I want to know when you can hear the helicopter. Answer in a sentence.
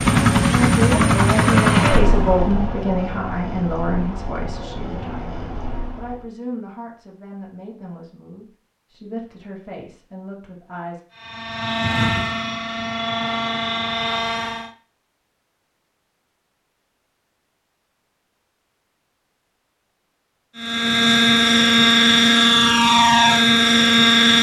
You can hear the helicopter from 0.0 to 6.2 s, from 11.1 to 14.7 s and from 20.6 to 24.3 s.